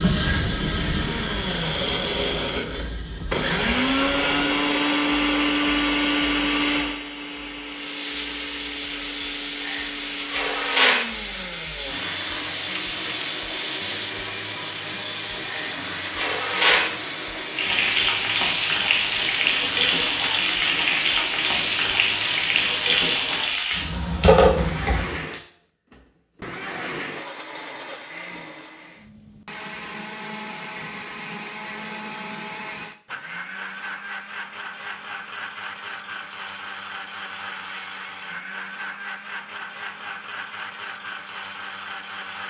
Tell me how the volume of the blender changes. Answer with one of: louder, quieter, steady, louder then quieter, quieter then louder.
quieter.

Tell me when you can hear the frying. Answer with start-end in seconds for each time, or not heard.
0.0-4.6, 7.7-25.2.